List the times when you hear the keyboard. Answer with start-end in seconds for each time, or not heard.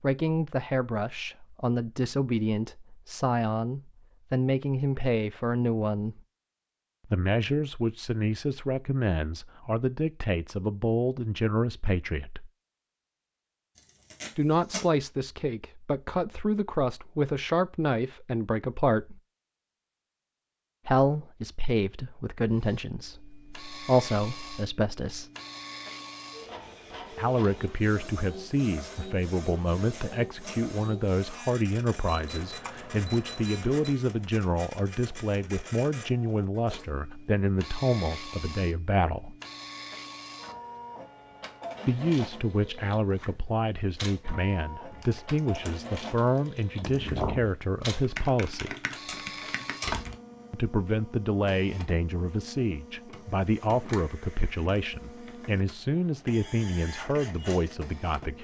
44.9-50.1.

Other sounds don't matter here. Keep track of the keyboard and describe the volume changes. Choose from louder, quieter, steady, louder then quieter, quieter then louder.
louder then quieter.